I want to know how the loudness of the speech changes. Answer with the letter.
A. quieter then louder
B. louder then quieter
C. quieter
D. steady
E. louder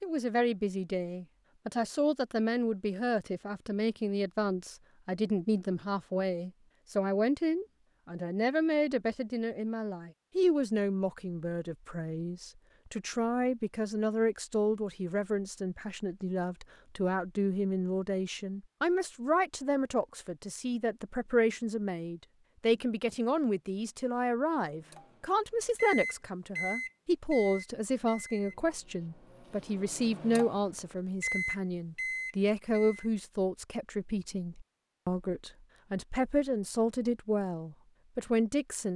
D.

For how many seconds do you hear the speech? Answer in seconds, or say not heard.
39 s.